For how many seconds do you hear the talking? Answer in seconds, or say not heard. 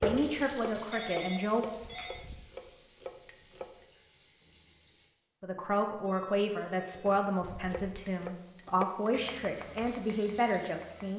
7 s.